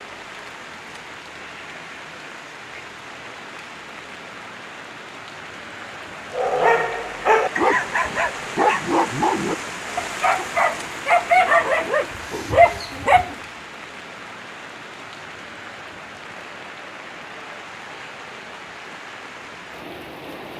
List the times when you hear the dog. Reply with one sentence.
The dog can be heard from 6.3 to 13.3 s.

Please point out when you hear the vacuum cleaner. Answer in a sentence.
The vacuum cleaner can't be heard in this clip.